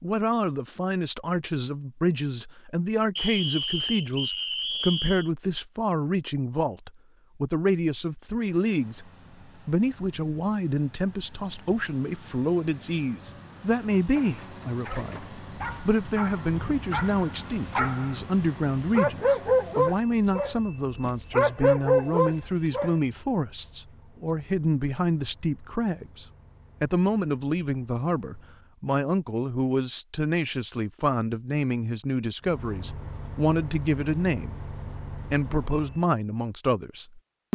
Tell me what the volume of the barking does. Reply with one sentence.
The volume of the barking goes up.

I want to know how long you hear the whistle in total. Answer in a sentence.
You can hear the whistle for 2 seconds altogether.